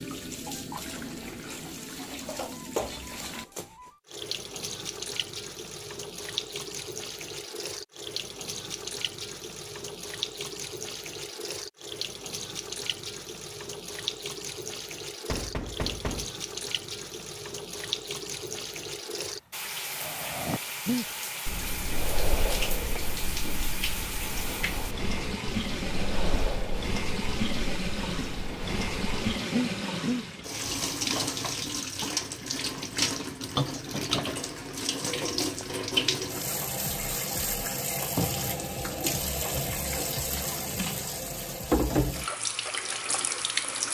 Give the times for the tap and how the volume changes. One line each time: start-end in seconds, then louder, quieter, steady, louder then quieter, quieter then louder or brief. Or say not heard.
0.0-43.8 louder.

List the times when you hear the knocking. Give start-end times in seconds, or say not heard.
15.2-16.4.